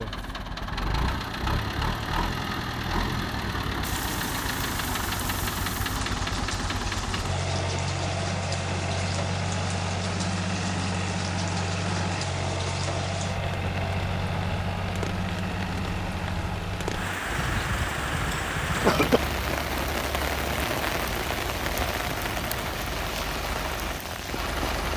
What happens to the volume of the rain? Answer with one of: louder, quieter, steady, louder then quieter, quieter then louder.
louder.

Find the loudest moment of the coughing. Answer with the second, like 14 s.
19 s.